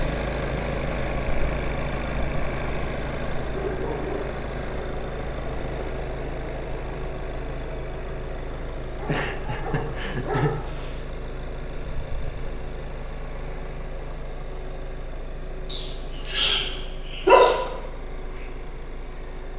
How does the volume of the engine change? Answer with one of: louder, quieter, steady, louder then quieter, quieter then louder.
quieter.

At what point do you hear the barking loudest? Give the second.
17 s.